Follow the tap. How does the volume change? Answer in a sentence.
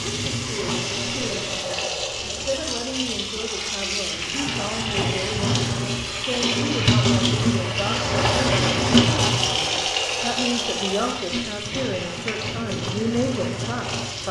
The volume of the tap goes up, then down.